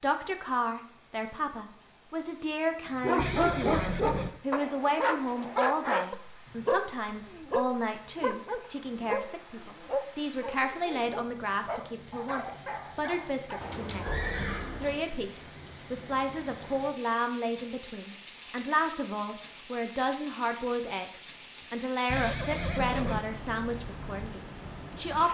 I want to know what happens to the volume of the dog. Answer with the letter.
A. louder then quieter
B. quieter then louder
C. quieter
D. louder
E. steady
C.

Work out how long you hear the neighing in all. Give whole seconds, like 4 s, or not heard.
4 s.